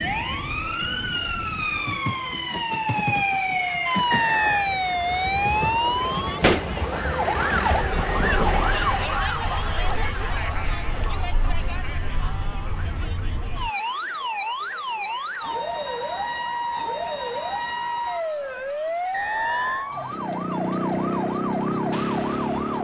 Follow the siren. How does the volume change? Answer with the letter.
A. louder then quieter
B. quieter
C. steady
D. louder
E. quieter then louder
E.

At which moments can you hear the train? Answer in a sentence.
The train can be heard from 0.0 to 9.1 s.